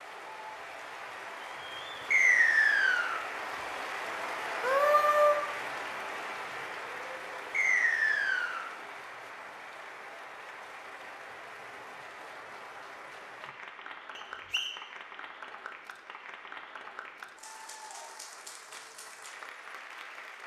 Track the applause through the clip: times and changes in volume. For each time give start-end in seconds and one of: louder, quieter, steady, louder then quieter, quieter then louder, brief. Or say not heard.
0.0-20.4 quieter.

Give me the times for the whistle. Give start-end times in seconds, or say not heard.
2.1-3.2, 7.5-8.7, 14.2-14.8.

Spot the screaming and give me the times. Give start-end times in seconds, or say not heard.
4.6-5.4.